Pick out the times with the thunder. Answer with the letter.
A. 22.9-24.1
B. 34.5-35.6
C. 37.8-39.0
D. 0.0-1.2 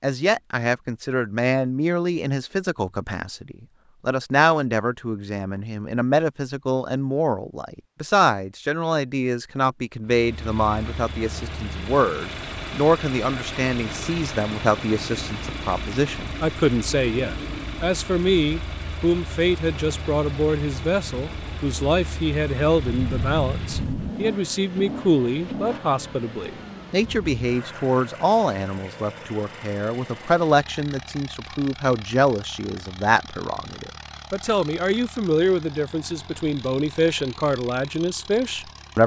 A.